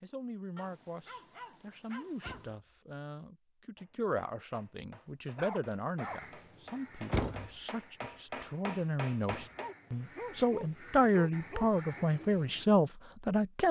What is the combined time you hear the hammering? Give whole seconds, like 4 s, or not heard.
6 s.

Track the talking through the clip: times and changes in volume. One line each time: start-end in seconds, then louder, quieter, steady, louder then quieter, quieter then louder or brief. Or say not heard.
0.0-13.6 louder.